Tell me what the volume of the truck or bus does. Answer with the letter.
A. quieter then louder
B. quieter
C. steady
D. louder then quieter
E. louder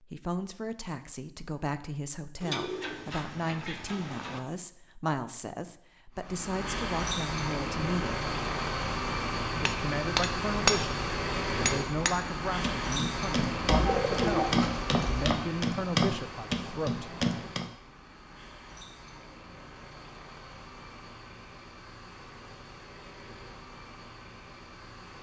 B.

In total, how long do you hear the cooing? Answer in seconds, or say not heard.
4 s.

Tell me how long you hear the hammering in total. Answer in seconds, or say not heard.
8 s.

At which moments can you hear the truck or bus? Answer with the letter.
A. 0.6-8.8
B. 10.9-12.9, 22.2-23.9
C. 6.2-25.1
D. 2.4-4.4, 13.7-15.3
C.